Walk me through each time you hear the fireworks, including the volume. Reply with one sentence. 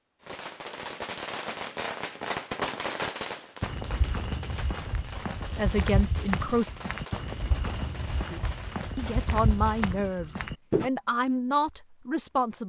You can hear the fireworks from 0.2 to 9.9 s, getting quieter.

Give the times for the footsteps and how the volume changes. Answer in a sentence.
The footsteps can be heard from 3.6 to 10.9 s, at a steady volume.